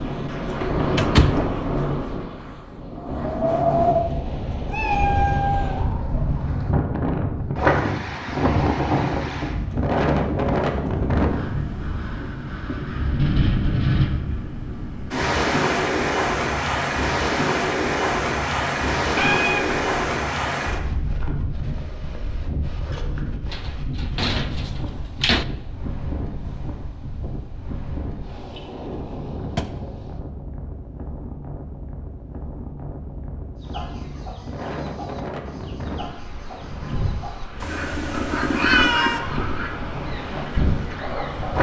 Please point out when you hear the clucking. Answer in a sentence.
The clucking can be heard from 33.5 to 41.5 s.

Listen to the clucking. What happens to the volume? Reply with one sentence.
The loudness of the clucking goes up, then down.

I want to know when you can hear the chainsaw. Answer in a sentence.
The chainsaw can't be heard in this clip.